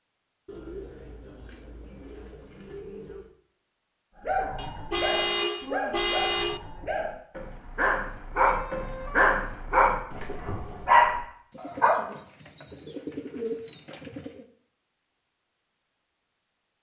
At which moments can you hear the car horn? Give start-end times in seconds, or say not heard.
4.5-6.6, 8.4-9.3.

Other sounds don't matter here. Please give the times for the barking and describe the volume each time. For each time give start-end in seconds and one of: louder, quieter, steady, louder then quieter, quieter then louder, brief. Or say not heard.
4.2-12.0 louder.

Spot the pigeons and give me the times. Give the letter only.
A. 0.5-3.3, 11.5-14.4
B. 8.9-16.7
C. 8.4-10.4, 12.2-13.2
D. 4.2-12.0
A.